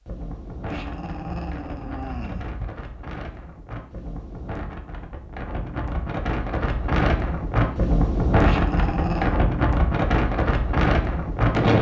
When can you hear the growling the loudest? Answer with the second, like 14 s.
9 s.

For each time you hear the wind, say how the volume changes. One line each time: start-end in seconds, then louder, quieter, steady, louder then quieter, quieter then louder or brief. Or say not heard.
0.0-11.7 louder.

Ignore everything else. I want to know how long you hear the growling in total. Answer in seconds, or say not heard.
3 s.